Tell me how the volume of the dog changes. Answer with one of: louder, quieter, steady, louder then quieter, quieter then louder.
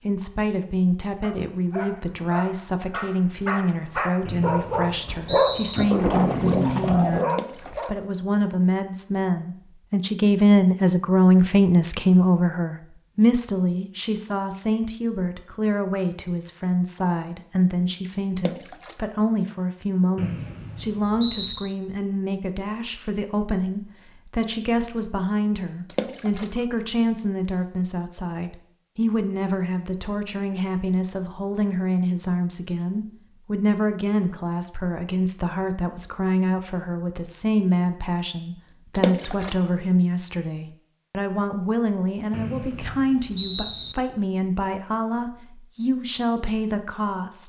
louder.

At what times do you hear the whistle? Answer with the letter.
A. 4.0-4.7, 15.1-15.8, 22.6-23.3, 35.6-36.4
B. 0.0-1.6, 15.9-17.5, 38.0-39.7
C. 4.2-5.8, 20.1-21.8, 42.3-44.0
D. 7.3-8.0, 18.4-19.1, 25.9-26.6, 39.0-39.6
C.